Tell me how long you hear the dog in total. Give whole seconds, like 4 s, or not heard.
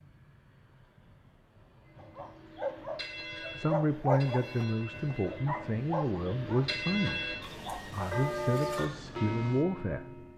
6 s.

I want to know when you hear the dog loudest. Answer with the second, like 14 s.
4 s.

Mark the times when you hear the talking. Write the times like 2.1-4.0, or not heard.
3.5-10.1.